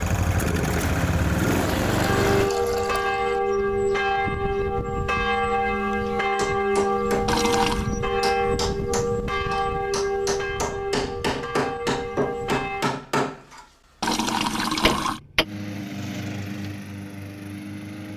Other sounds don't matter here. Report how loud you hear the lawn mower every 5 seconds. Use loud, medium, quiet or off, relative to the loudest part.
loud, off, off, medium.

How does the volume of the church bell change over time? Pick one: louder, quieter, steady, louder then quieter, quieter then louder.
quieter.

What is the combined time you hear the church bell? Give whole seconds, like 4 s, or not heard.
11 s.